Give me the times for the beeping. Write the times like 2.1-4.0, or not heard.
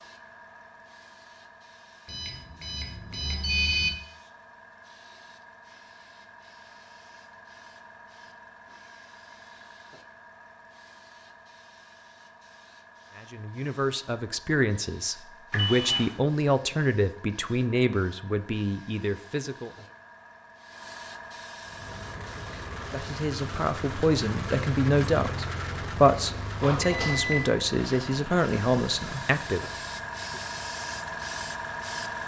2.0-3.9, 15.5-16.1, 26.6-27.6.